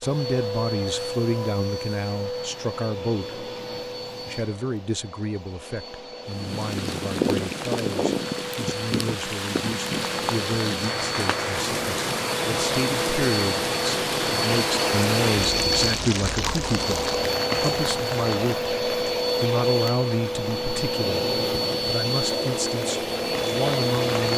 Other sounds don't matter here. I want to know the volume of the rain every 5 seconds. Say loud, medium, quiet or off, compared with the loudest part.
off, loud, loud, loud, medium.